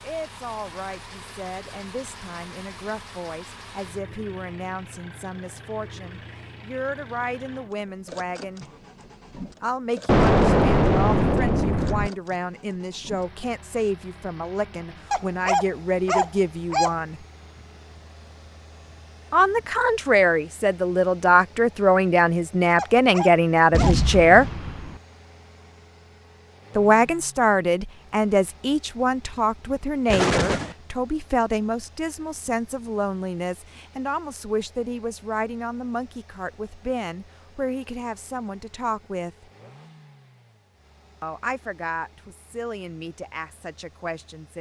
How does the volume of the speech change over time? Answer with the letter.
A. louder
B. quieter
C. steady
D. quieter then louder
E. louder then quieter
E.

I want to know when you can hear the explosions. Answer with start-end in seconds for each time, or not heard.
10.1-12.1, 23.7-25.0, 30.1-30.8.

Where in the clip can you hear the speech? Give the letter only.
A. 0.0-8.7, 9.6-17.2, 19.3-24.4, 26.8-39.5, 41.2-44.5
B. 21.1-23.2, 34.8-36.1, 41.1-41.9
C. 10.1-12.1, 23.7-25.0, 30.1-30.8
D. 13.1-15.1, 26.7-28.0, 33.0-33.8
A.